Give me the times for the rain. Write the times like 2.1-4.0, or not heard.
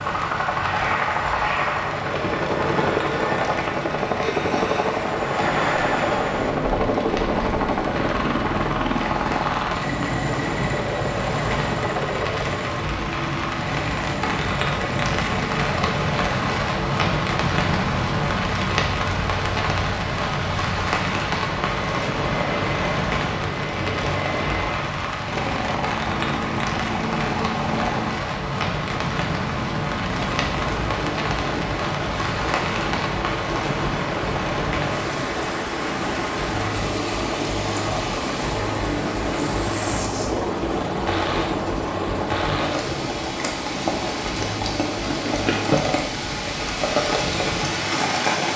0.0-48.5.